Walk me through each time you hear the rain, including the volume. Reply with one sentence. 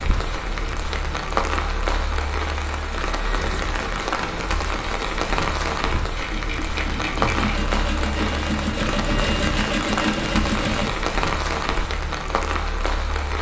You can hear the rain from 0.0 to 13.3 s, at a steady volume.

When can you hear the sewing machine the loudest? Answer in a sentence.
The volume of the sewing machine peaks at 10 seconds.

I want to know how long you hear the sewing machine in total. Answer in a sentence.
The sewing machine can be heard for 5 seconds in total.